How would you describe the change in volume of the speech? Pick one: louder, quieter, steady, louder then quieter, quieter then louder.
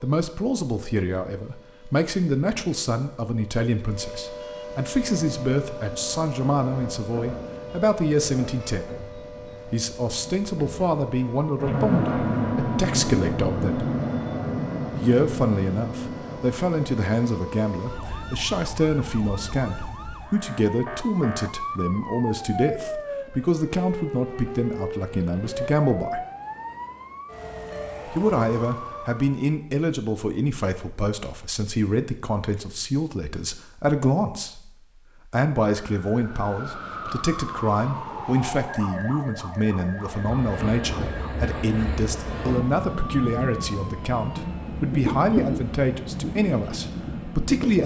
steady.